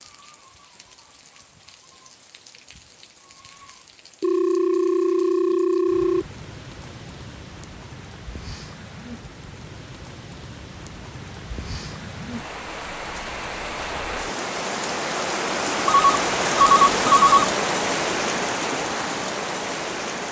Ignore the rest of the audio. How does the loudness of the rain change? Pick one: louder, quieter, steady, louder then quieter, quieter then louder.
louder.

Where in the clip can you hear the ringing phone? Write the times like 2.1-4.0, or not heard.
4.2-6.2, 15.8-17.4.